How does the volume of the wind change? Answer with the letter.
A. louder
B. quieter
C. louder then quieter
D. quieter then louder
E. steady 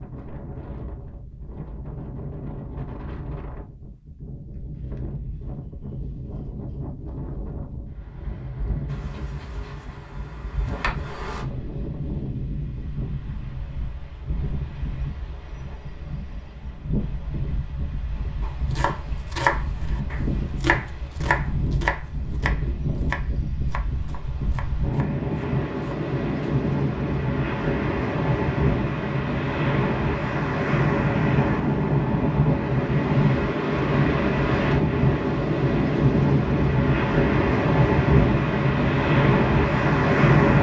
A.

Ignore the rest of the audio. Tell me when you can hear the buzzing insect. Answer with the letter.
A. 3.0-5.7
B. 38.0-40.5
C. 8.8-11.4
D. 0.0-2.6
C.